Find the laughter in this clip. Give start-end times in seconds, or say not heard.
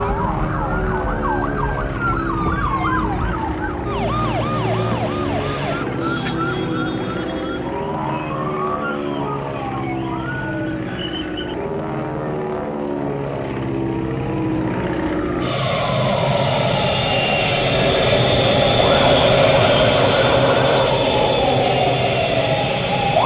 not heard.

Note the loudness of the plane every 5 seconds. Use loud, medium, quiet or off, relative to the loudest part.
medium, medium, medium, loud, loud.